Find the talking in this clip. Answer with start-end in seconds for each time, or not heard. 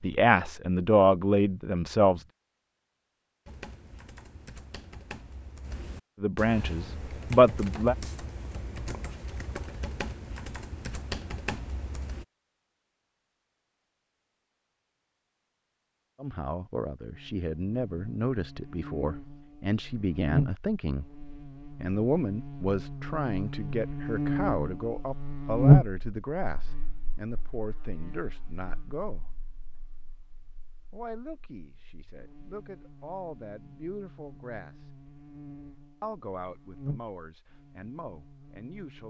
0.0-2.2, 6.2-8.0, 16.1-21.1, 21.8-29.3, 30.9-34.9, 36.0-39.0.